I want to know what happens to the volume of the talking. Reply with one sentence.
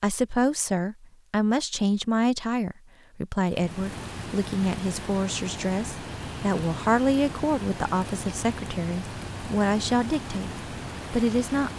The volume of the talking stays about the same.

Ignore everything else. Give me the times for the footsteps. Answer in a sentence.
The footsteps can't be heard in this clip.